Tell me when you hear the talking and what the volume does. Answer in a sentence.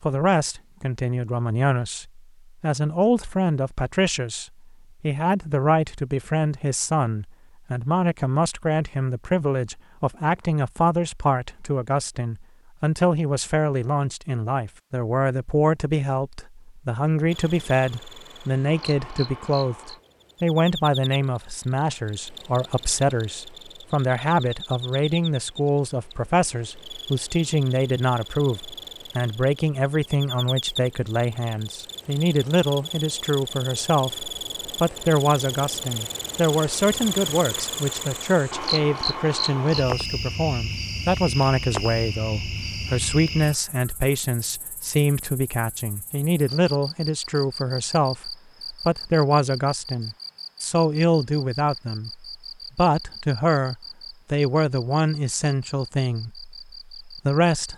The talking can be heard from 0.0 to 57.7 s, at a steady volume.